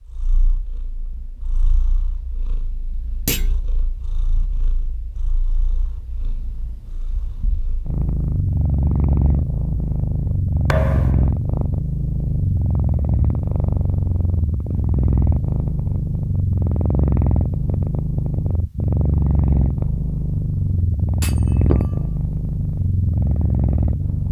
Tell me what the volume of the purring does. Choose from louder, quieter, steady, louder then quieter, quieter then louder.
louder.